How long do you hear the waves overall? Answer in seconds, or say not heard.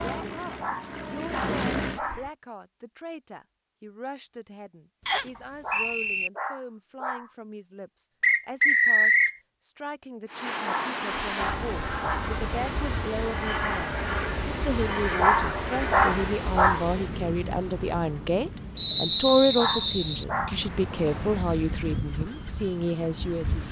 13 s.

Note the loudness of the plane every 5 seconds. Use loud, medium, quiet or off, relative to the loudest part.
loud, off, loud, loud, off.